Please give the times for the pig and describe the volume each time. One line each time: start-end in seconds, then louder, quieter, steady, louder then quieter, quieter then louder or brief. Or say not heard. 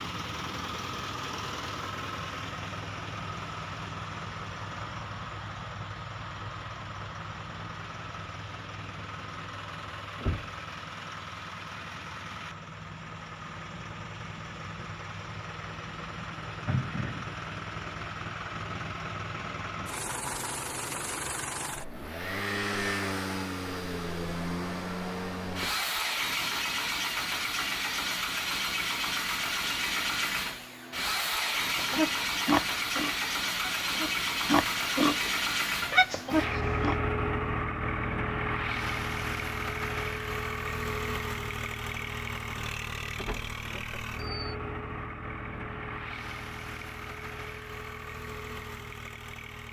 31.8-37.0 quieter then louder.